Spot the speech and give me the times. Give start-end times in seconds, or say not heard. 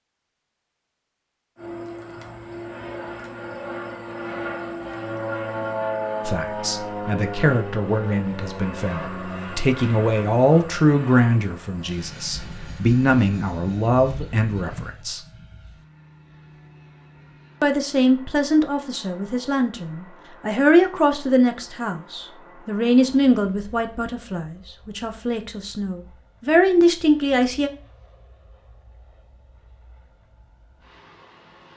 6.2-15.2, 17.6-27.7.